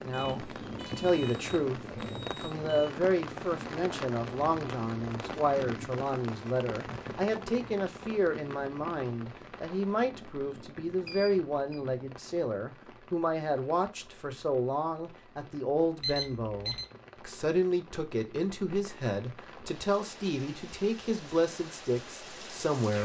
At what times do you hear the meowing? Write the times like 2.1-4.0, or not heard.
not heard.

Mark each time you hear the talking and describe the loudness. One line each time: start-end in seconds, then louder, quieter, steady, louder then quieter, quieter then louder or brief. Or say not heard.
0.0-1.8 brief
2.4-23.0 steady.